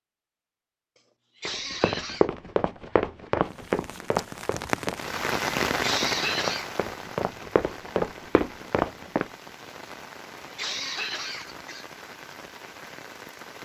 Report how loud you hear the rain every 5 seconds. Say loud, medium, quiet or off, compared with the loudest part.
loud, loud, medium.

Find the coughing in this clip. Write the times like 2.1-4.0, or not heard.
1.4-2.2, 5.8-6.7, 10.5-11.8.